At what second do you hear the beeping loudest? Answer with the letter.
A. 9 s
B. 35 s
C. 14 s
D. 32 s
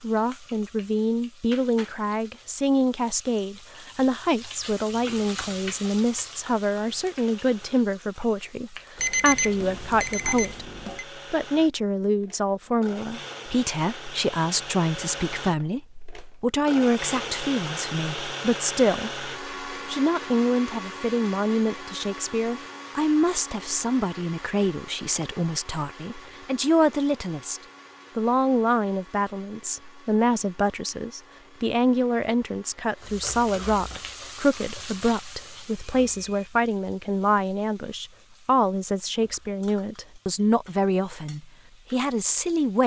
A.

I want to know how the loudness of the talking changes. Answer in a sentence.
The loudness of the talking stays about the same.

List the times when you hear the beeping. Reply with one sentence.
The beeping can be heard from 8.9 to 11.1 s.